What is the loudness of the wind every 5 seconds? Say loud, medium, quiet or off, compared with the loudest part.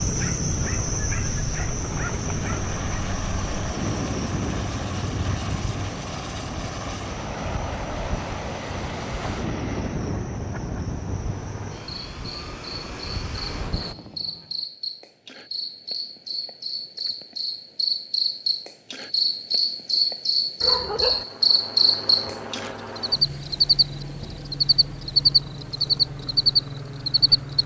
loud, loud, loud, off, off, off.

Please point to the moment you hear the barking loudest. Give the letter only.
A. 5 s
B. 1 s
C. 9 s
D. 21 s
D.